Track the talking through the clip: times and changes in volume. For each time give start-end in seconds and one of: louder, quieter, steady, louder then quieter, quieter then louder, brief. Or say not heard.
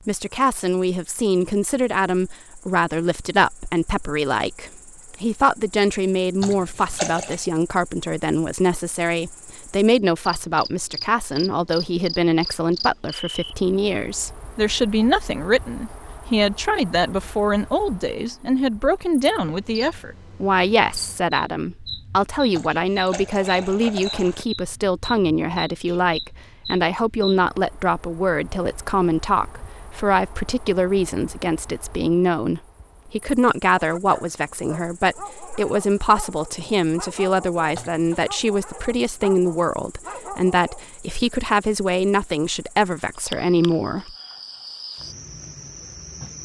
0.1-44.1 steady.